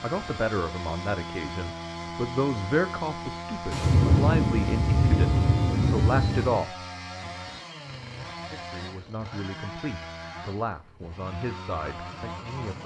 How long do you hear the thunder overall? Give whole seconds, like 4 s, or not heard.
3 s.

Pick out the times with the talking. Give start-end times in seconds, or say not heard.
0.0-7.3, 8.5-12.8.